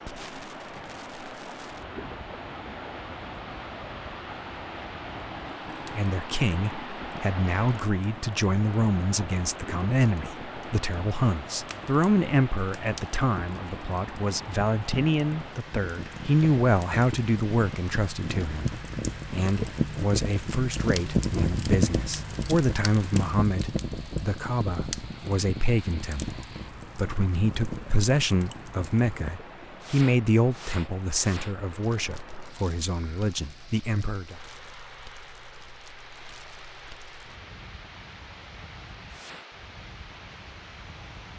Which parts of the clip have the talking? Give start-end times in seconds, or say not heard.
6.0-34.4.